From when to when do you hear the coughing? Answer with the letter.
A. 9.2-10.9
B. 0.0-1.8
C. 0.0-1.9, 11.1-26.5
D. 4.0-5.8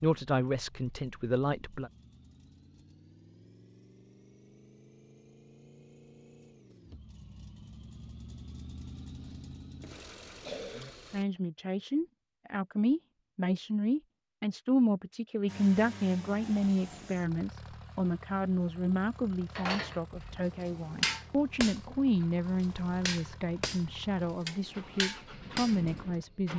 A.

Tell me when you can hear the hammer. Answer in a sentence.
You can hear the hammer from 19.6 to 25.9 s.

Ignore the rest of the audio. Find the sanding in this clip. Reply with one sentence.
You can't hear the sanding here.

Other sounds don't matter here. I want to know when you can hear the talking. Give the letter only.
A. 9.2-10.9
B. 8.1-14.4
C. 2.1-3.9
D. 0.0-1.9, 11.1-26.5
D.